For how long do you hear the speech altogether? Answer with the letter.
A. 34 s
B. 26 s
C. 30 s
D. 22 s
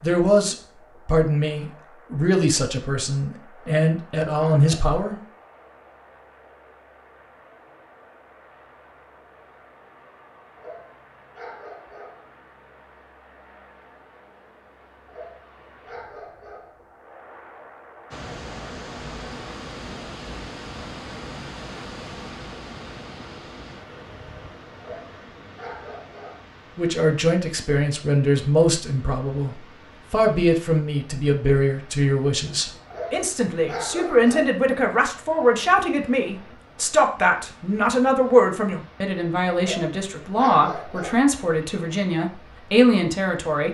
D.